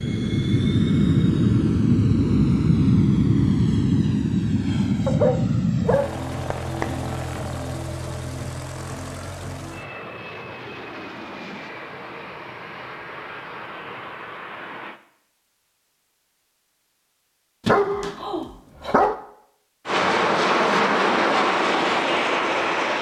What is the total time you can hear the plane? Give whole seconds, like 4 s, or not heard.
18 s.